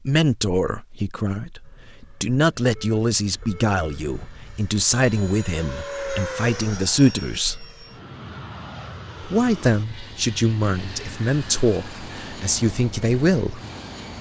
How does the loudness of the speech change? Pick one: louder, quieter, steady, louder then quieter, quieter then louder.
steady.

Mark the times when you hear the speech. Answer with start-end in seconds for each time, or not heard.
0.1-7.5, 9.2-13.6.